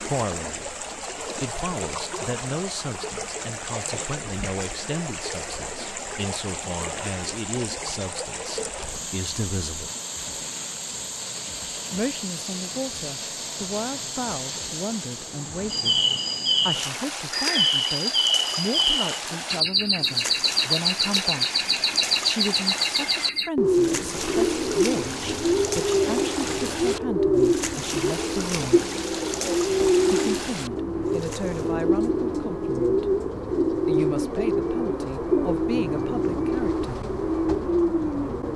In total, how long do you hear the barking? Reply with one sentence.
The barking can't be heard in this clip.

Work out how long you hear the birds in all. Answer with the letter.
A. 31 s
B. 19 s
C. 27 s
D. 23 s
D.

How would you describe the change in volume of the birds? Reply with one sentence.
The volume of the birds stays about the same.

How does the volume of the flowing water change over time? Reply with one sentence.
The volume of the flowing water stays about the same.